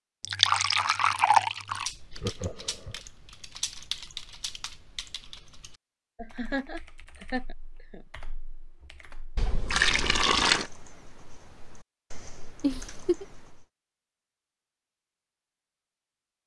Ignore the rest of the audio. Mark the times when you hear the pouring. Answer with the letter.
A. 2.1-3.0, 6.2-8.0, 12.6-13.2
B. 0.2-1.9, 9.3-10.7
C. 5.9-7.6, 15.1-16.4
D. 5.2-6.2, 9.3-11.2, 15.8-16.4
B.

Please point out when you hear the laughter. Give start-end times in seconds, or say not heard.
2.1-3.0, 6.2-8.0, 12.6-13.2.